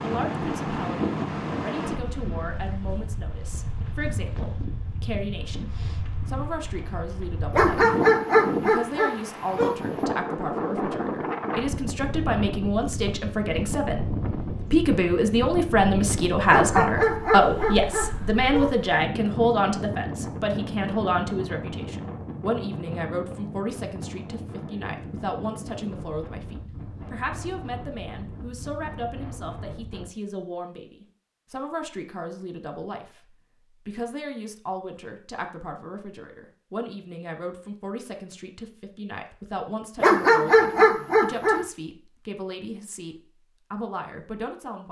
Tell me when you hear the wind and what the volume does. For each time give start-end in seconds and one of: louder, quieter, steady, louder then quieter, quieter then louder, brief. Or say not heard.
0.0-30.1 quieter.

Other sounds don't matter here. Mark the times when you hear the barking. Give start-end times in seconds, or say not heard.
7.5-9.8, 16.5-18.8, 40.0-41.6.